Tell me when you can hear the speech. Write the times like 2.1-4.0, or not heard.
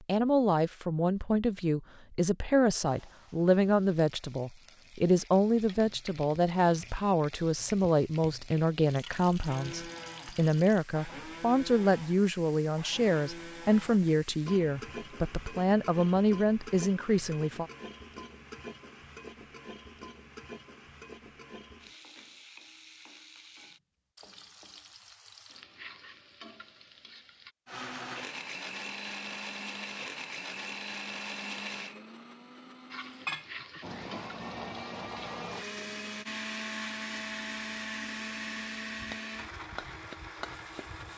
0.1-17.7.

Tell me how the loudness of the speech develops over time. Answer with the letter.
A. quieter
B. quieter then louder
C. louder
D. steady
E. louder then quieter
D.